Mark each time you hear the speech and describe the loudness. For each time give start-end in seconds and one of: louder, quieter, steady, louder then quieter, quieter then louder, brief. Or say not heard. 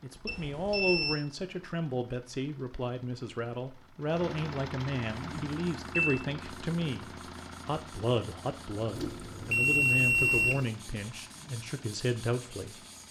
0.0-12.8 steady.